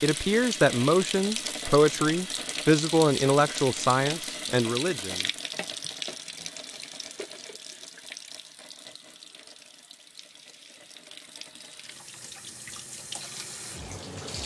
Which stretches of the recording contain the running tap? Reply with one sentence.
The running tap can be heard from 0.0 to 14.4 s.